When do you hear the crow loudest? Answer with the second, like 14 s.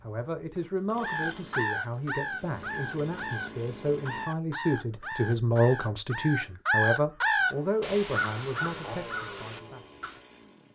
7 s.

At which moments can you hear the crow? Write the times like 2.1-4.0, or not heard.
1.0-10.2.